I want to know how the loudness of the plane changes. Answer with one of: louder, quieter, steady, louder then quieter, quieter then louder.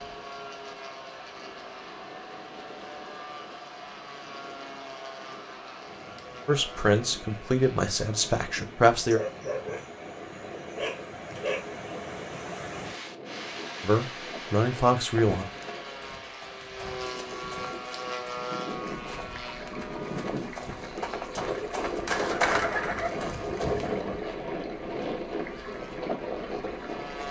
louder.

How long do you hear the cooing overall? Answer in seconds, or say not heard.
3 s.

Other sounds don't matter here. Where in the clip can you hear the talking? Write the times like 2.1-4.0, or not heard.
6.5-9.2, 13.8-15.4.